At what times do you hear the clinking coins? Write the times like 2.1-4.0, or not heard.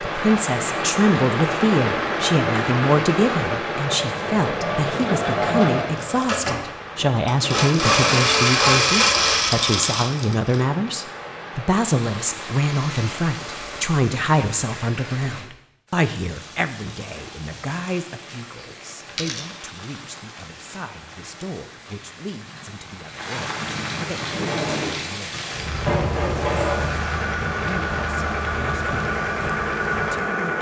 19.1-20.0.